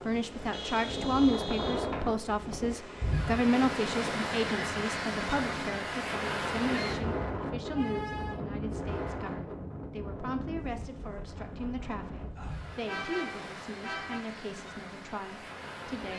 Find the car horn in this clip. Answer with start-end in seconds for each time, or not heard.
0.5-1.9, 7.7-8.4, 12.8-14.2.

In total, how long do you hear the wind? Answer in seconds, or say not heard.
16 s.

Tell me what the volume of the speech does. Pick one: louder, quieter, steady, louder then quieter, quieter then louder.
quieter.